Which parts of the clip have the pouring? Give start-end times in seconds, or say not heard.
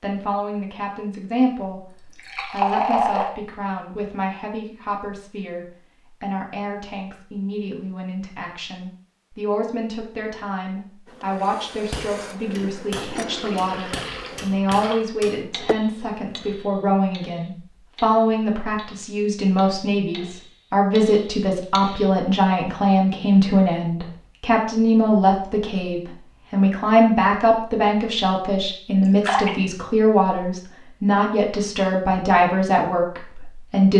1.9-3.3, 13.2-15.1, 29.0-29.6.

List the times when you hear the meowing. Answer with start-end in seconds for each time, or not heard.
not heard.